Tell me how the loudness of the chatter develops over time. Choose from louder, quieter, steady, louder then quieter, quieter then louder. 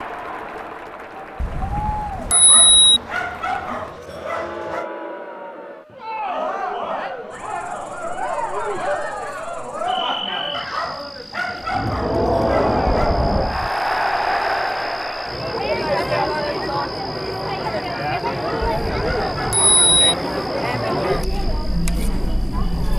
louder.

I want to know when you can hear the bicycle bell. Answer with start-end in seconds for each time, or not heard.
1.4-3.0, 12.8-13.7, 18.6-20.1.